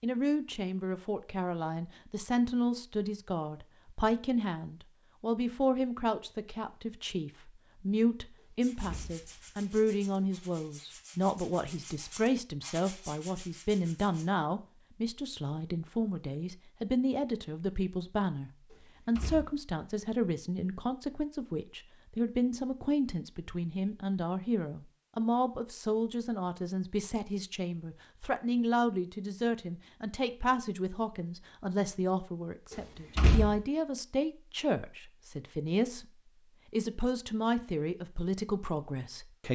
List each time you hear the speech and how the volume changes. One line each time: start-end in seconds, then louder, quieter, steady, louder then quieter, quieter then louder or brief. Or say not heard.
0.0-39.4 steady.